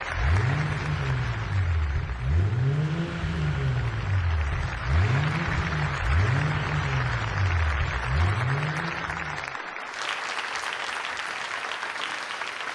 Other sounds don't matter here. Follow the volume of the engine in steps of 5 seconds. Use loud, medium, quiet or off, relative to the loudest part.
loud, loud, off.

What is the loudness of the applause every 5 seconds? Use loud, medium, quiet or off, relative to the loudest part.
medium, loud, loud.